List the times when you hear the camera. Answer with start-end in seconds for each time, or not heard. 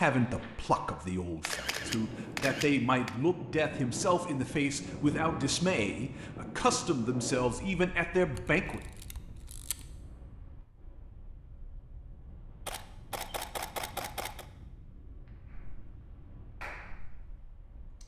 1.4-3.1, 8.3-9.8, 12.7-14.4.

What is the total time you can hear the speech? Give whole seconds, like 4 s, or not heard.
9 s.